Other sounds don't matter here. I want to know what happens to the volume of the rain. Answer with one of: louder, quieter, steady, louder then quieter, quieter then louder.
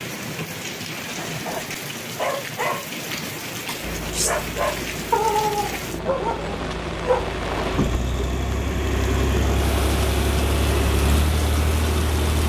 steady.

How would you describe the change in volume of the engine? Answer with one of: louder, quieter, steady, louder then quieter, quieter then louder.
louder.